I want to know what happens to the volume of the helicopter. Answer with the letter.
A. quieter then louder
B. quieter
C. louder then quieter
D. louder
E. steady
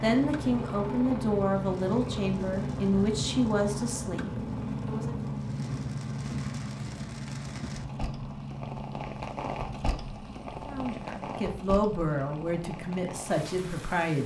B.